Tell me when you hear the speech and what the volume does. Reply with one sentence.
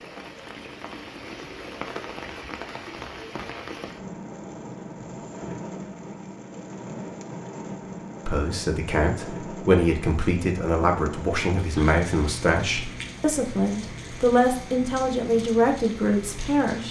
You can hear the speech from 8.2 to 16.8 s, at a steady volume.